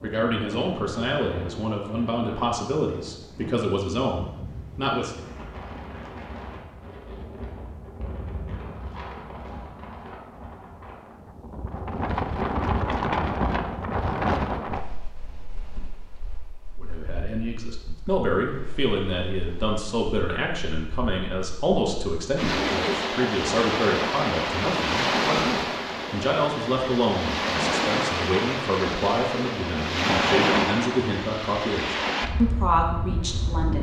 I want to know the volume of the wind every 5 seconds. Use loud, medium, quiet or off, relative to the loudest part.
quiet, quiet, loud, quiet, loud, loud, loud.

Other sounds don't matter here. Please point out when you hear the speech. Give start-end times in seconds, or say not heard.
0.0-5.2, 16.8-33.7.